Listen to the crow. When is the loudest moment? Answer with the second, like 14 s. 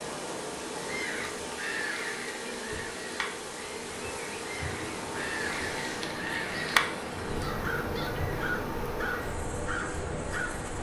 7 s.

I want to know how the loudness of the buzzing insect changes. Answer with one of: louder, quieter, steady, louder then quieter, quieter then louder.
steady.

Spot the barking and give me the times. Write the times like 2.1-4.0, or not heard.
not heard.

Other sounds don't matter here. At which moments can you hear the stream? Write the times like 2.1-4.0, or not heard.
0.0-10.7.